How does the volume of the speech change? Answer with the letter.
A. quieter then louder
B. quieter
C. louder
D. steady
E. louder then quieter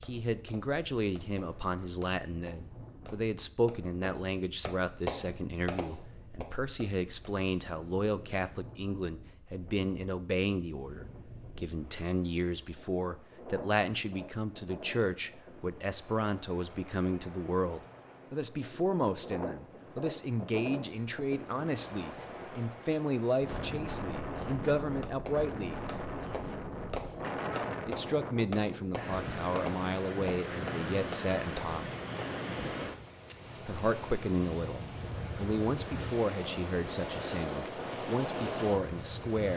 D.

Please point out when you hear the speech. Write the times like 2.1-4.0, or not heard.
0.0-25.8, 27.9-31.9, 33.6-39.5.